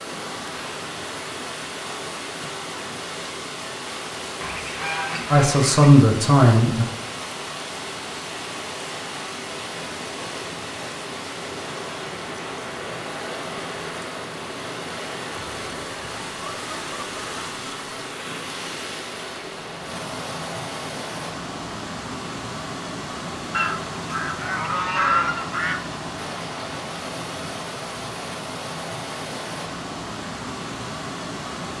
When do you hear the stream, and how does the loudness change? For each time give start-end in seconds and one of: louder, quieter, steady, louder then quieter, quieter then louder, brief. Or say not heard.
0.0-31.7 steady.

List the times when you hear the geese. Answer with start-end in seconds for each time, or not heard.
4.4-5.9, 15.3-18.1, 23.5-25.8.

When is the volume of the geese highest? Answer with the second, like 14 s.
25 s.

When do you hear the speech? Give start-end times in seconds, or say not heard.
5.3-6.8.